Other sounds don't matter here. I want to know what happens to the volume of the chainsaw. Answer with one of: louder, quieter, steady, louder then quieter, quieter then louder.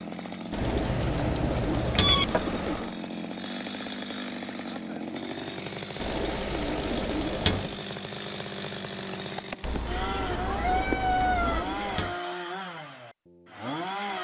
steady.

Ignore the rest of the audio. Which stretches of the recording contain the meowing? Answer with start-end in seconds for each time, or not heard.
0.6-2.4, 9.6-11.7.